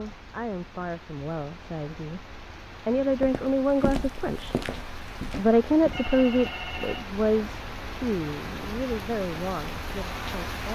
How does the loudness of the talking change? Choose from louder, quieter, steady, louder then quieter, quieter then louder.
louder then quieter.